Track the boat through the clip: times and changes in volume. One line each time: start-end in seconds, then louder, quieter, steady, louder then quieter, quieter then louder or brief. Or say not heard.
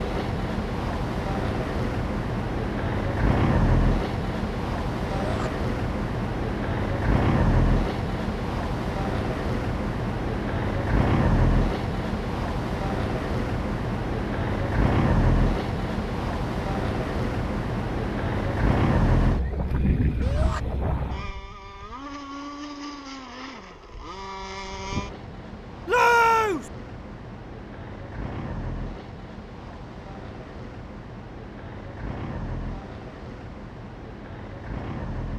0.0-35.3 quieter.